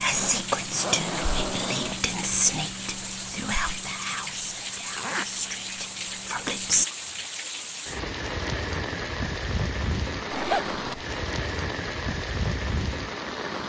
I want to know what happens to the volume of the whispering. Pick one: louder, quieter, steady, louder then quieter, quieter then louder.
quieter.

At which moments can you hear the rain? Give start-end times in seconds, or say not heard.
0.0-13.6.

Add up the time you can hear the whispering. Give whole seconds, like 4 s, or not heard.
7 s.